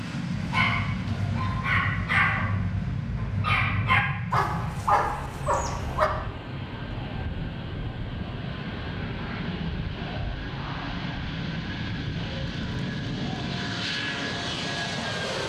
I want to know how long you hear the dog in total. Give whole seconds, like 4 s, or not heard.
6 s.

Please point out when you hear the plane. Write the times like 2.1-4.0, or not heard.
0.0-15.4.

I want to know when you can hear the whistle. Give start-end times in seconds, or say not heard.
not heard.